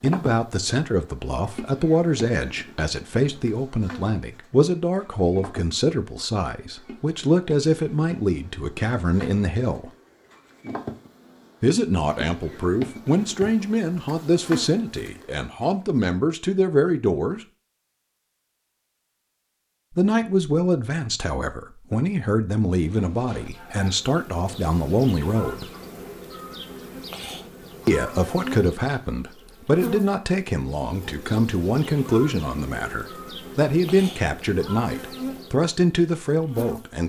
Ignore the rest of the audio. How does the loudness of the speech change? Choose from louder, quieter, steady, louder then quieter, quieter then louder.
steady.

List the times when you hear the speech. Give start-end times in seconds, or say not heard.
0.0-9.9, 11.6-17.4, 19.9-25.6, 27.9-37.0.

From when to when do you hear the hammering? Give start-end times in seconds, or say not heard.
not heard.